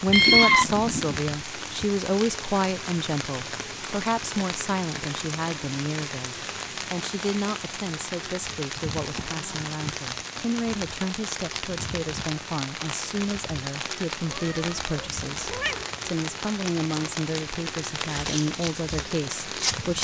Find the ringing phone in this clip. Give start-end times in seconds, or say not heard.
not heard.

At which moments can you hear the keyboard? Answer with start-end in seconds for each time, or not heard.
not heard.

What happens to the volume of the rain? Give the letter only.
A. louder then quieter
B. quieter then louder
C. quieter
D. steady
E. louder
D.